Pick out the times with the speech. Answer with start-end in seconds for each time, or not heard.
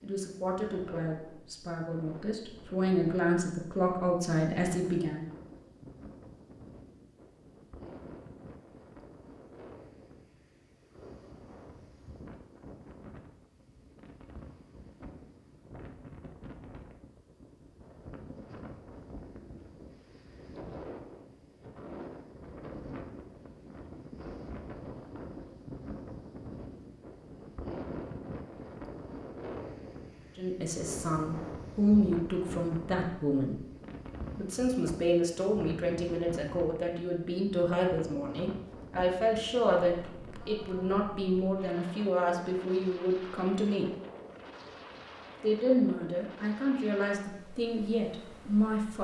0.0-5.2, 30.4-33.6, 34.4-43.9, 45.4-48.9.